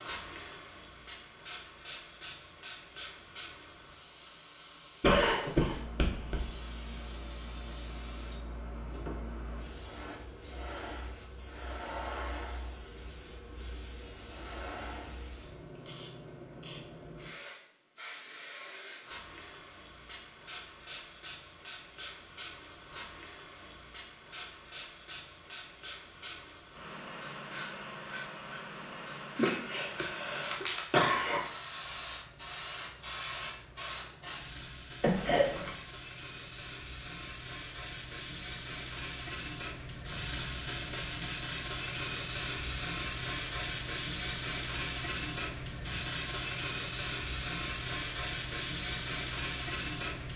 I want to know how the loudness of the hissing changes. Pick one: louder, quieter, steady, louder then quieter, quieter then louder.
louder.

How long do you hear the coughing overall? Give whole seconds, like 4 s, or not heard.
4 s.